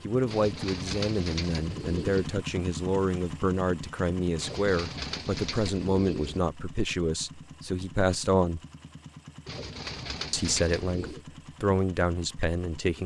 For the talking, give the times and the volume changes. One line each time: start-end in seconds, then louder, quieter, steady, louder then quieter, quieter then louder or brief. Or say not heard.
0.0-8.6 steady
10.3-13.0 brief.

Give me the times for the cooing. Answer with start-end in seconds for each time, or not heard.
0.2-2.3, 4.3-6.4, 9.4-11.2.